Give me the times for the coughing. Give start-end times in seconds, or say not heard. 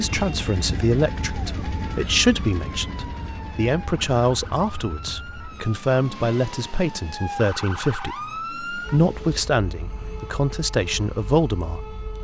not heard.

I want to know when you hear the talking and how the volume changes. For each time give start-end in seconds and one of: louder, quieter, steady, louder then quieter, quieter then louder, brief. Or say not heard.
0.0-12.1 steady.